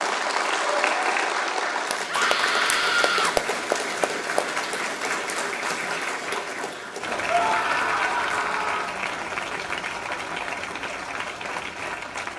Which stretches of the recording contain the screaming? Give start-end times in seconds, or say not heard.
2.0-3.4, 7.2-9.0.